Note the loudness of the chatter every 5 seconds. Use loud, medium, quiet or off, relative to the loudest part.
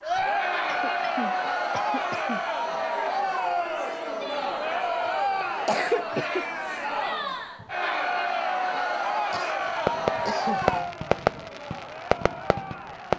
loud, loud, medium.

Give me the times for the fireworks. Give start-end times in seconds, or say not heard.
9.6-13.1.